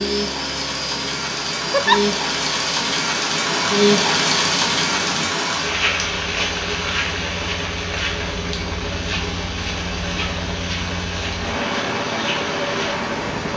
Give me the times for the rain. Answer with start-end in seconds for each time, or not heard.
0.0-13.5.